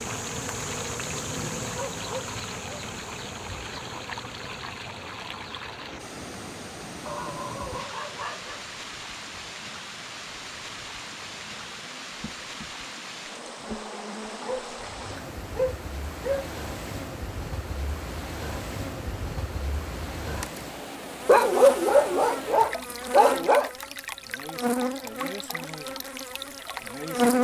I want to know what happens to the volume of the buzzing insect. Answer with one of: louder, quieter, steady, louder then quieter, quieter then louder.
quieter then louder.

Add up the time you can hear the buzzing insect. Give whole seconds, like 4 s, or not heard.
27 s.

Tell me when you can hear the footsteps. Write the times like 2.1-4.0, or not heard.
not heard.